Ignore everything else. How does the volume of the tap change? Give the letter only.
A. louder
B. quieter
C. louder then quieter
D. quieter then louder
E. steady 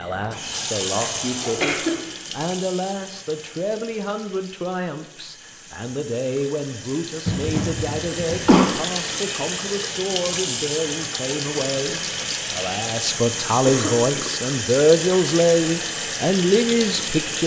D.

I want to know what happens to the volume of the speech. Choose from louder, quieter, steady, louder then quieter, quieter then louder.
louder.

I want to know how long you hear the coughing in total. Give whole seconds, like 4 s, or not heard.
3 s.